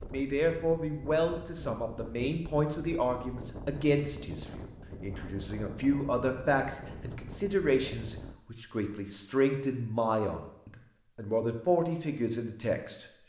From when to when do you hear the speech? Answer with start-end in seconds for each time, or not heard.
0.0-13.1.